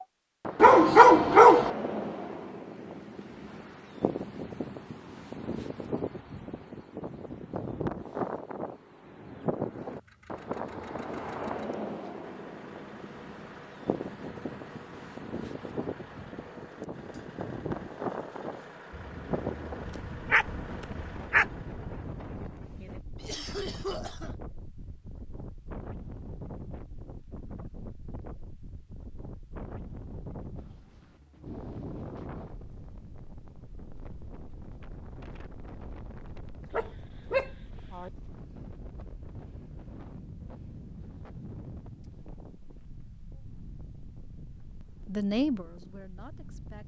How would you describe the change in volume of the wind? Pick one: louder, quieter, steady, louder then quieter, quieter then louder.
quieter.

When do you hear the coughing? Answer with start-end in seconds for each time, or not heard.
23.2-24.4.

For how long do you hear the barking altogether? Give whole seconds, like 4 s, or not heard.
5 s.